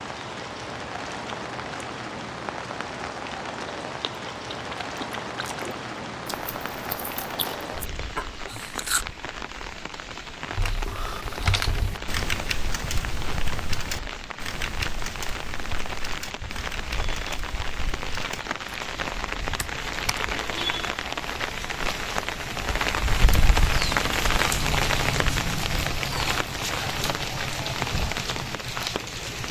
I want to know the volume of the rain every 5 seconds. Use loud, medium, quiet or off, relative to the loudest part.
medium, medium, medium, medium, loud, loud.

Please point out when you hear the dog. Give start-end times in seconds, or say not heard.
not heard.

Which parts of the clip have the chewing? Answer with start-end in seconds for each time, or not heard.
4.0-9.1.